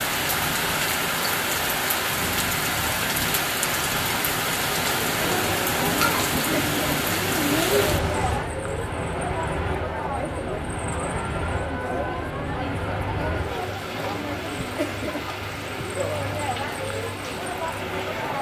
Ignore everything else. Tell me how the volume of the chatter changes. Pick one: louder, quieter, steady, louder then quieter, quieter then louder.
steady.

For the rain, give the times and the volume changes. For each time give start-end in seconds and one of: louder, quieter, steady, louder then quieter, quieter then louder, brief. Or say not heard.
0.0-18.3 quieter.